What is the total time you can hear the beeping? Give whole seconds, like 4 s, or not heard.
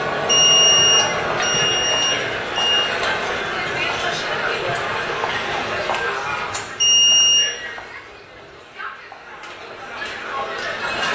3 s.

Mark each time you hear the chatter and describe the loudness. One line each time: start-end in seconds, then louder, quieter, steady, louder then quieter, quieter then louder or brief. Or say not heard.
0.0-11.0 quieter.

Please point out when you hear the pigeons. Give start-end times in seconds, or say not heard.
not heard.